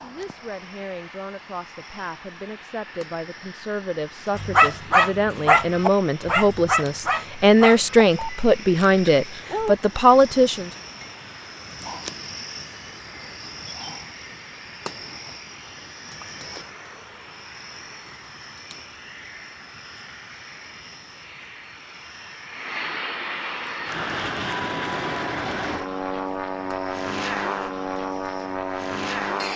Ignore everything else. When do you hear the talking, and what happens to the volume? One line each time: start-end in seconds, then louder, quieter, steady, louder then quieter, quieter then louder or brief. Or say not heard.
0.0-10.7 louder.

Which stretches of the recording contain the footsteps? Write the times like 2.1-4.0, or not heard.
not heard.